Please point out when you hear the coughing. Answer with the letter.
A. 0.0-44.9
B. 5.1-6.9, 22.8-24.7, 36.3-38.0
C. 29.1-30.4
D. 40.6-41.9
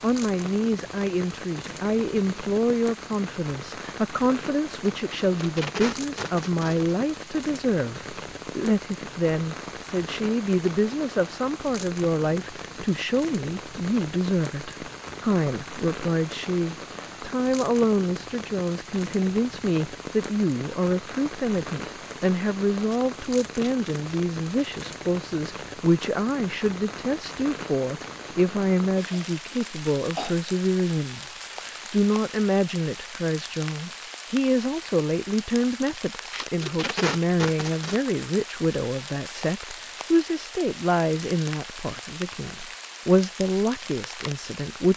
C.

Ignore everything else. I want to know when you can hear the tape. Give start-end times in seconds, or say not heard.
5.1-6.9, 22.8-24.7, 36.3-38.0.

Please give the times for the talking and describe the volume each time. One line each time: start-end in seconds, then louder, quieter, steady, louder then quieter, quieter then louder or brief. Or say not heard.
0.0-44.9 steady.